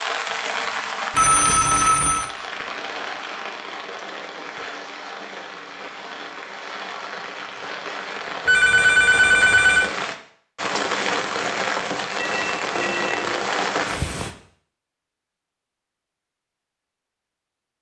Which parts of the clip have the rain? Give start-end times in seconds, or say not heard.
0.0-14.3.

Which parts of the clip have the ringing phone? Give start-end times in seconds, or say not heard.
1.1-2.3, 8.4-9.9, 12.2-13.3.